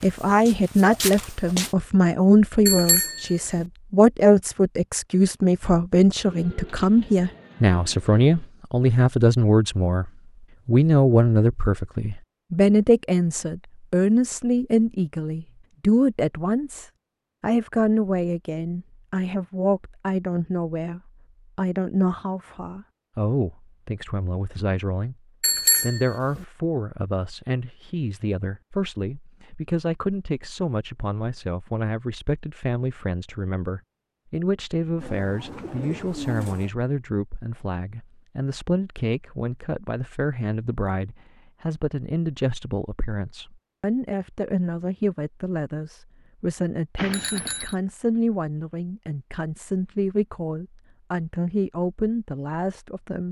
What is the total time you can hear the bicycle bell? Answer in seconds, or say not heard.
3 s.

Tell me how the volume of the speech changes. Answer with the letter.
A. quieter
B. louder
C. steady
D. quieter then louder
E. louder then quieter
A.